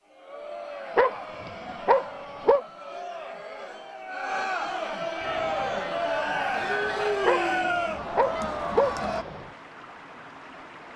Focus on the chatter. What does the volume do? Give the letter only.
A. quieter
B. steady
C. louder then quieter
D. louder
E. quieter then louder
D.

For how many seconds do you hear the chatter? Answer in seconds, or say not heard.
9 s.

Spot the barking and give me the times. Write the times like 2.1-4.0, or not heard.
0.9-2.6, 7.2-9.4.